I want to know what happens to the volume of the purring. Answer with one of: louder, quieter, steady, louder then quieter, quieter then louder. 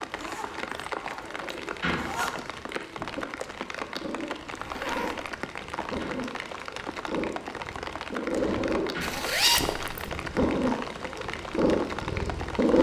louder.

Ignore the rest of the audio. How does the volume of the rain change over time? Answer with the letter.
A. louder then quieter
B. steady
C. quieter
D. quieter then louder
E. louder
B.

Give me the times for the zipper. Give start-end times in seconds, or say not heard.
0.1-2.4, 4.5-5.3, 9.0-10.1.